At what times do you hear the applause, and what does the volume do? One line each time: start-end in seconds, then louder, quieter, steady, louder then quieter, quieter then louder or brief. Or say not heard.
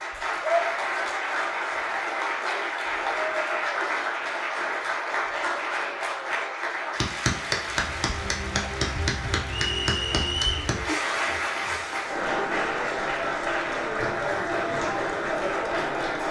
0.0-16.2 steady.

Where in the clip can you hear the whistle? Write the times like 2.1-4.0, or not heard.
9.4-10.6.